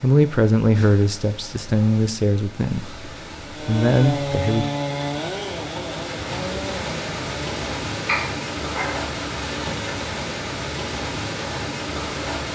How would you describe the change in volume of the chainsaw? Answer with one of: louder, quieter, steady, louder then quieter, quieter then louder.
quieter.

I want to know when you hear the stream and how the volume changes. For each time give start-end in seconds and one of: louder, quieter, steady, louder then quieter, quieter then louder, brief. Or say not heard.
0.0-12.5 louder.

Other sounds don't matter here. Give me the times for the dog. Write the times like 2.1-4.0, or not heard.
8.1-9.2.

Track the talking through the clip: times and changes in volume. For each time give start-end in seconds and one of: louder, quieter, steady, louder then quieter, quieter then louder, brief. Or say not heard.
0.0-4.7 quieter then louder.